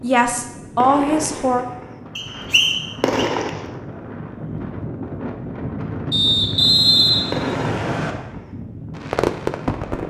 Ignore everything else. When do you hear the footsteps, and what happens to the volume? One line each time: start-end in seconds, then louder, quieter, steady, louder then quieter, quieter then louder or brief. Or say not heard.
not heard.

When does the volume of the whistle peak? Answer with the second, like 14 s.
7 s.